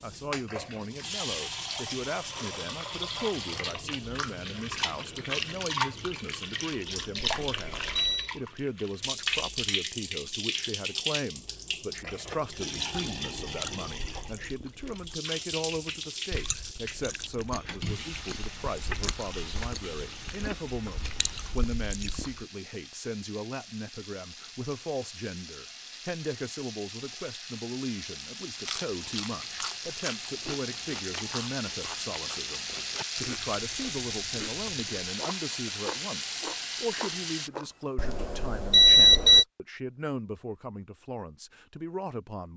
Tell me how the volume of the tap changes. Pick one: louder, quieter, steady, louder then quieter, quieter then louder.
quieter then louder.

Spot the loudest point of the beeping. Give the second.
39 s.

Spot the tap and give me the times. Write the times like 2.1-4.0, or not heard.
0.0-37.5.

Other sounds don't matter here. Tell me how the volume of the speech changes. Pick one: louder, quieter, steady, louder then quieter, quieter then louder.
steady.